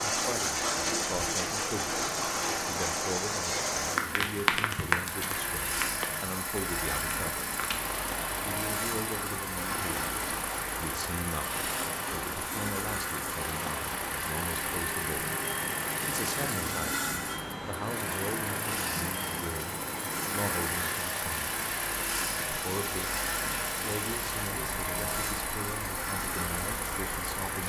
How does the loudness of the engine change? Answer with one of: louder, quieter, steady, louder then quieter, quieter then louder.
steady.